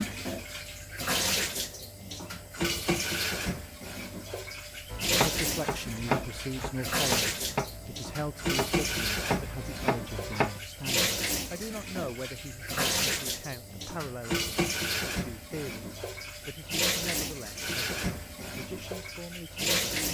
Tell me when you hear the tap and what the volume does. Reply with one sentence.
You can hear the tap from 0.0 to 20.1 s, at a steady volume.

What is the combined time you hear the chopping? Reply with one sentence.
The chopping can be heard for 6 seconds in total.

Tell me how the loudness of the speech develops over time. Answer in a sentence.
The volume of the speech goes down.